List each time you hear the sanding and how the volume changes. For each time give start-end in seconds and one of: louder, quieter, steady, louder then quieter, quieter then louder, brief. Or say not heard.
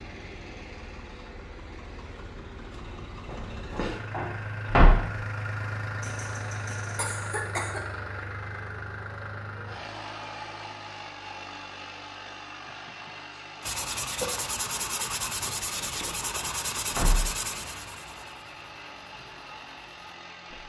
13.6-20.6 quieter.